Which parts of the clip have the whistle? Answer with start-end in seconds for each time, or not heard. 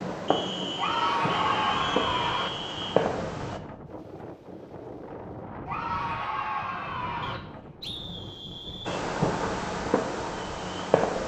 0.2-3.0, 7.2-9.0.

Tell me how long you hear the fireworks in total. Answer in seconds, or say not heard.
6 s.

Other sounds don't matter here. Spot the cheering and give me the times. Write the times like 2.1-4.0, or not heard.
0.8-2.5, 5.7-7.4.